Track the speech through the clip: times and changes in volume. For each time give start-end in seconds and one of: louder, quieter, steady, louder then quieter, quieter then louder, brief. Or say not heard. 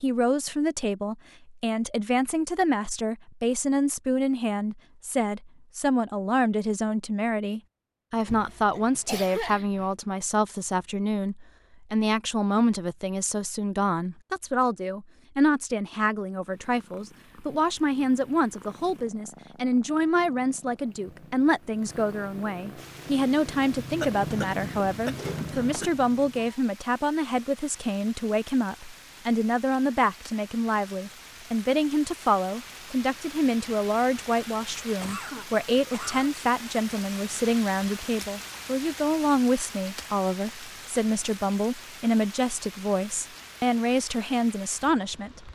0.0-45.5 steady.